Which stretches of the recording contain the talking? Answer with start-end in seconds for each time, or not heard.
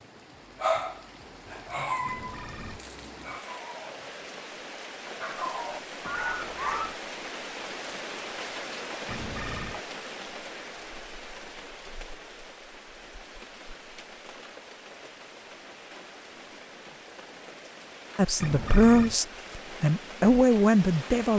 18.1-21.3.